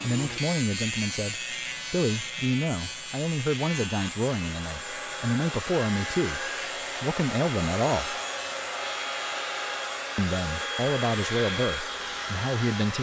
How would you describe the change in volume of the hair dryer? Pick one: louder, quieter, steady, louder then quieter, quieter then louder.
louder.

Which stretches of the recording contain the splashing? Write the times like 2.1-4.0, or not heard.
not heard.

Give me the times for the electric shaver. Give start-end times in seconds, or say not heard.
0.0-12.9.